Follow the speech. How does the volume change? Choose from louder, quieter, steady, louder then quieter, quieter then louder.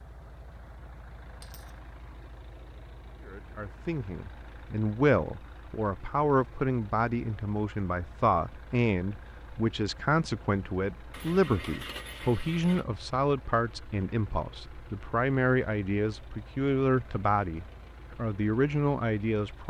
steady.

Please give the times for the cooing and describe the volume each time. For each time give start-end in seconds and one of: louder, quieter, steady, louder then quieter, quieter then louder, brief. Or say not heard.
not heard.